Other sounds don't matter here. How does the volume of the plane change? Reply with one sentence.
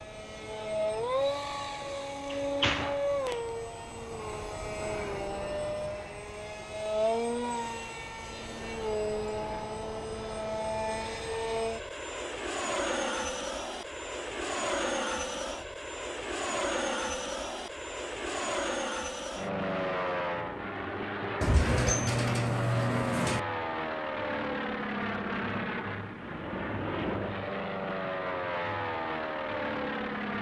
The volume of the plane stays about the same.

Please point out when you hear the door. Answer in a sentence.
You can hear the door from 1.8 to 3.4 s and from 21.4 to 23.4 s.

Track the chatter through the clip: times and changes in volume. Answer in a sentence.
You can't hear the chatter here.